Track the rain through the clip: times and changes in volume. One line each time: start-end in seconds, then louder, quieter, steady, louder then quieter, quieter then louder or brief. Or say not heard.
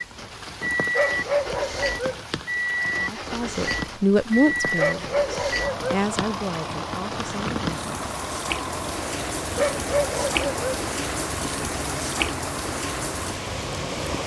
0.0-14.2 louder.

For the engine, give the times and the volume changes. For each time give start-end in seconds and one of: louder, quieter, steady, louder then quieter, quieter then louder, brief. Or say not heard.
0.0-14.2 quieter.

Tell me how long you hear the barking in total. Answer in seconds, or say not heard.
4 s.